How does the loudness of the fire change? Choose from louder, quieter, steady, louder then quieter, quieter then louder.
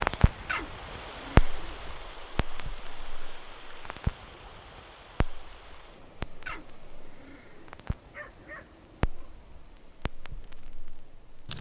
quieter then louder.